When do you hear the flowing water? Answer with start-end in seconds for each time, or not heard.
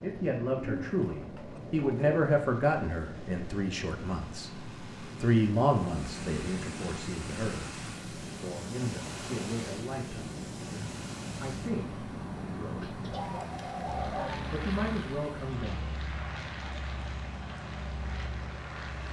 5.7-19.0.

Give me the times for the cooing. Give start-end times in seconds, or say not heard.
0.6-2.2, 12.8-14.5.